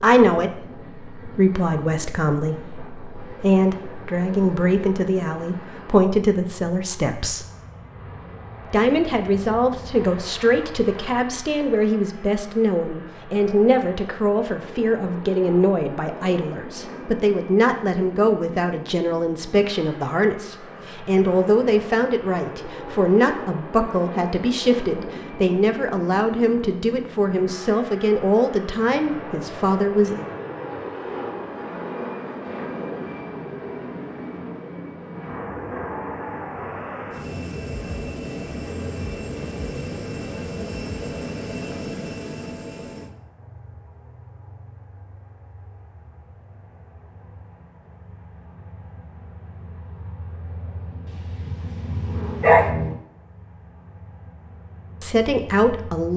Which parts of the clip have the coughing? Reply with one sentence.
You can't hear the coughing here.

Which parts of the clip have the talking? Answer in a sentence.
You can hear the talking from 0.0 to 7.5 s, from 8.7 to 30.2 s and from 55.0 to 56.1 s.